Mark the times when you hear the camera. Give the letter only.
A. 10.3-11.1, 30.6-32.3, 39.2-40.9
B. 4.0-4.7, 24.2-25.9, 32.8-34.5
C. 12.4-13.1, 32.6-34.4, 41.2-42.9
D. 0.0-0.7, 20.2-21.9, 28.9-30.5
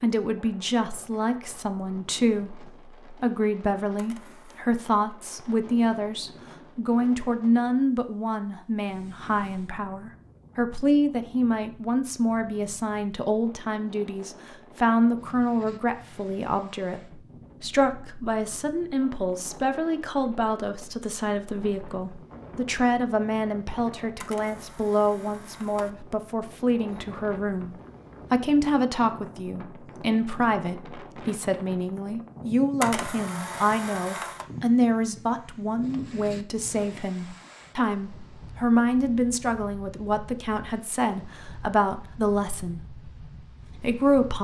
B.